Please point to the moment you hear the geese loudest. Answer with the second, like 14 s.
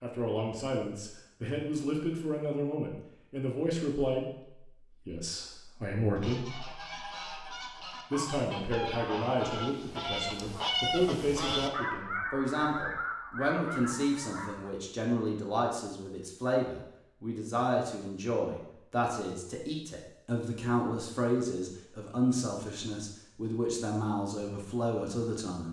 11 s.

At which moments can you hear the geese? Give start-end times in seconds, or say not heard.
6.2-14.7.